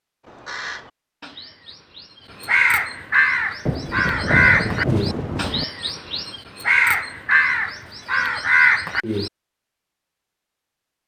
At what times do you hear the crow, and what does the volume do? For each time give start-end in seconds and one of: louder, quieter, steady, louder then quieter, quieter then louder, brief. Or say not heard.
0.2-9.3 louder.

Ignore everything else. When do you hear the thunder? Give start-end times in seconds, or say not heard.
3.6-5.7.